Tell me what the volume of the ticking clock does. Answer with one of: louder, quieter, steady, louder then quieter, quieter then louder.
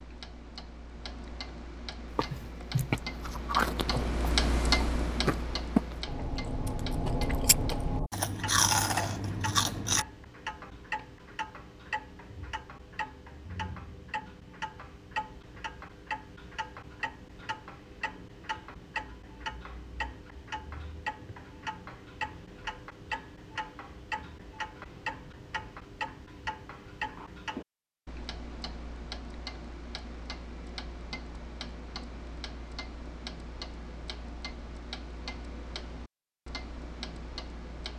quieter.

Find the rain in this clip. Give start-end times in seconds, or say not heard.
not heard.